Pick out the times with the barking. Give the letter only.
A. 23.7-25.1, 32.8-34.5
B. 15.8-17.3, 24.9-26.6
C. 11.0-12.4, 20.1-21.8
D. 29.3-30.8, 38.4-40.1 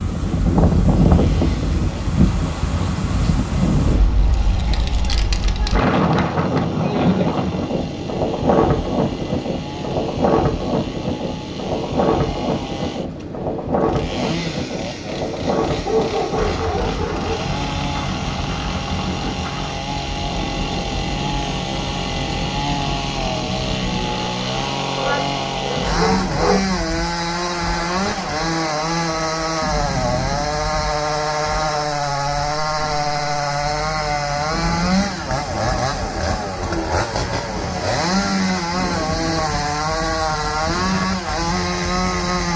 B.